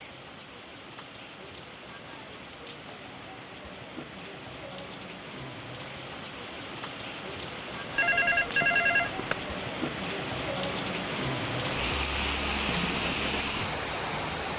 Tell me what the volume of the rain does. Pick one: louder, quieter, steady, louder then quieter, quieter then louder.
louder.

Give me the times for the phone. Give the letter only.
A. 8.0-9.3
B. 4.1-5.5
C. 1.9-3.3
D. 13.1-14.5
A.